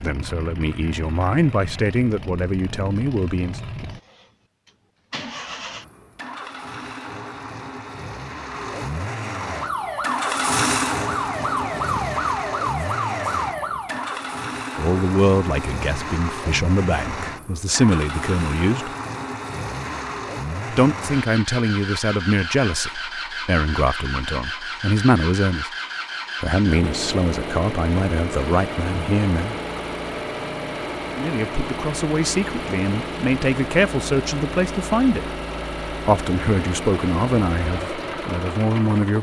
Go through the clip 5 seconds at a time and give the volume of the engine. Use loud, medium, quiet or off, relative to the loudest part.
medium, medium, loud, loud, loud, loud, loud, loud.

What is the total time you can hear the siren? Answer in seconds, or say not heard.
5 s.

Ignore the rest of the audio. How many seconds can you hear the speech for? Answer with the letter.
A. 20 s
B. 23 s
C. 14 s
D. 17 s
B.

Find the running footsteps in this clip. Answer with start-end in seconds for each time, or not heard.
not heard.